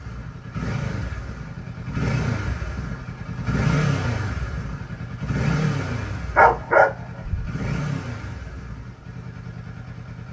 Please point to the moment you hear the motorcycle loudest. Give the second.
4 s.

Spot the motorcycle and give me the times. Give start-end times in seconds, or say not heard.
0.0-10.2.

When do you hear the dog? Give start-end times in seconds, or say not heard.
6.3-7.5.